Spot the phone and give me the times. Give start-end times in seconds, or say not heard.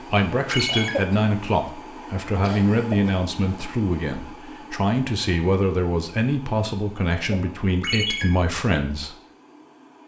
0.5-0.9, 7.8-8.2.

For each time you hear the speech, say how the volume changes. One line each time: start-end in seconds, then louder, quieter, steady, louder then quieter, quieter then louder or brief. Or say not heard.
0.0-9.2 steady.